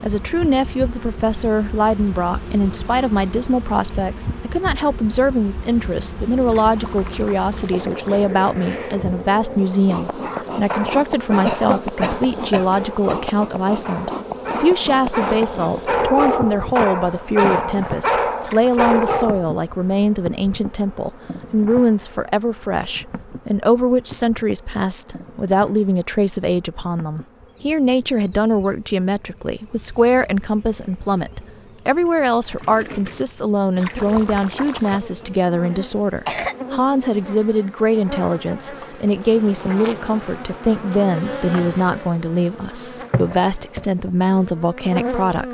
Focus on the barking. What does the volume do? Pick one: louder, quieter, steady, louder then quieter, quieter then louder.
louder.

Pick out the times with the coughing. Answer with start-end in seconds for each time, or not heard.
11.4-13.2, 35.8-36.5.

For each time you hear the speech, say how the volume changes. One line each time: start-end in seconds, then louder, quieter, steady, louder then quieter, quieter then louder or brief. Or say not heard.
0.0-45.5 steady.